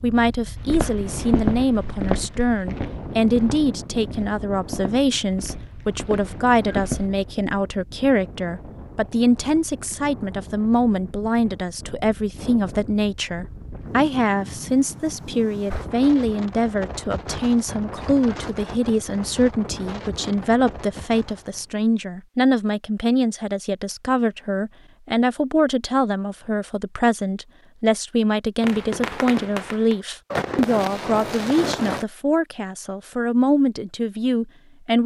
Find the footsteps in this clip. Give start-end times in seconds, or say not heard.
0.7-7.0.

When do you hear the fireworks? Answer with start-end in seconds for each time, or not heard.
28.6-32.0.